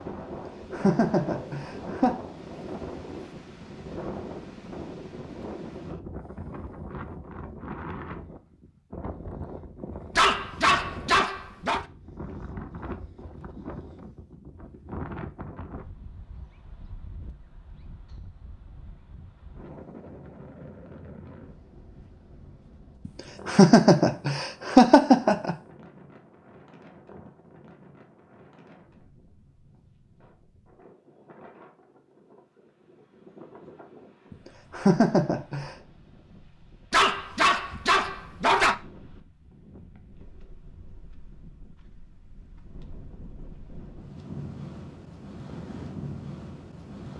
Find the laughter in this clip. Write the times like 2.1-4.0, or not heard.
0.3-2.1, 23.1-25.6, 34.3-35.8.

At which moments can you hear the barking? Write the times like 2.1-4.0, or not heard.
10.2-11.8, 36.9-38.8.